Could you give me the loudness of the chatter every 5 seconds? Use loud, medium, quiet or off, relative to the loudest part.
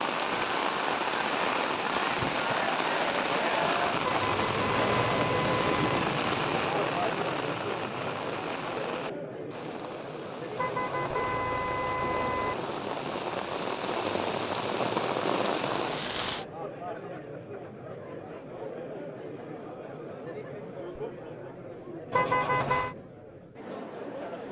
loud, loud, medium, medium, medium.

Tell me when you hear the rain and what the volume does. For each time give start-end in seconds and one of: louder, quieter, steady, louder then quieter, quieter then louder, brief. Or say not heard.
0.0-16.4 quieter then louder.